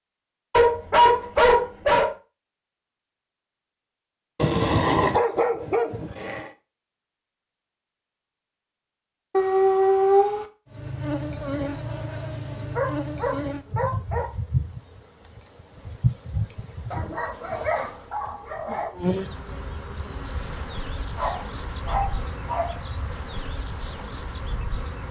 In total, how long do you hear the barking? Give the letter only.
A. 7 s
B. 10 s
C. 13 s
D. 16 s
B.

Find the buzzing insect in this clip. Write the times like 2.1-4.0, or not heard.
10.7-25.0.